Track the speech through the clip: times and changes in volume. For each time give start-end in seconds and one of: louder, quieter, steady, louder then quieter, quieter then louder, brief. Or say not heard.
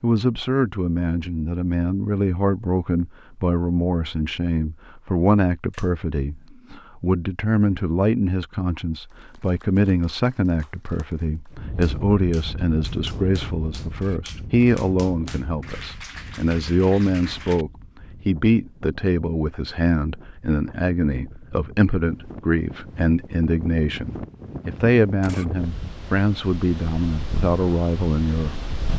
0.0-28.6 steady.